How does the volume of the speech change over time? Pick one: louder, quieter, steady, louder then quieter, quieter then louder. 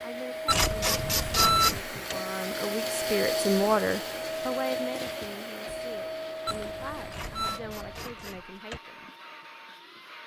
louder then quieter.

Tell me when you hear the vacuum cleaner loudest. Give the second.
3 s.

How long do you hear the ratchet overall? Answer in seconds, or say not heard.
3 s.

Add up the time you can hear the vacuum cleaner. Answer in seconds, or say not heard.
10 s.